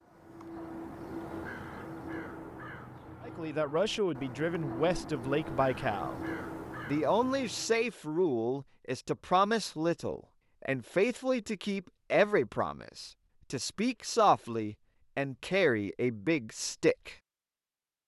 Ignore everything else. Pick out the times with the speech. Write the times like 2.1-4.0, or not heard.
3.2-6.2, 6.8-17.1.